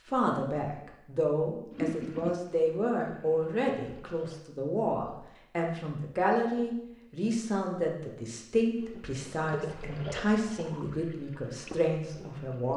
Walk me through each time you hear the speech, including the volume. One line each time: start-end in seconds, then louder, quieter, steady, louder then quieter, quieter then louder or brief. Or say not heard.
0.1-12.7 steady.